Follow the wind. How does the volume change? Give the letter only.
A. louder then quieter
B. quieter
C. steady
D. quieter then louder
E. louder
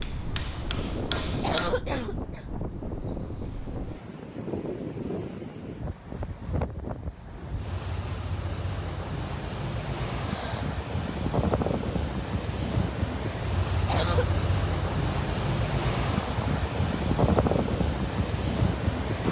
E.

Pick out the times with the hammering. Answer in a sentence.
The hammering can be heard from 0.0 to 1.7 s.